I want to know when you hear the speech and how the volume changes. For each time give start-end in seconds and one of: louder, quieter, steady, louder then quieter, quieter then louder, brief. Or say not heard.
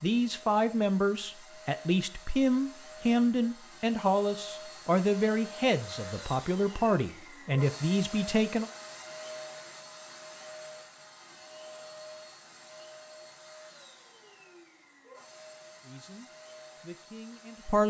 0.0-8.7 steady
15.8-17.8 brief.